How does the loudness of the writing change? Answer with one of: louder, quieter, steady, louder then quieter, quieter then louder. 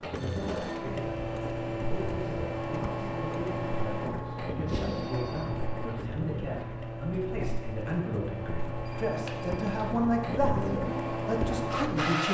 steady.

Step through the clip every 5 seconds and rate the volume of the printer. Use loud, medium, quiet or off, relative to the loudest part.
loud, medium, loud.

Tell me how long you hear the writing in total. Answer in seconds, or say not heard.
11 s.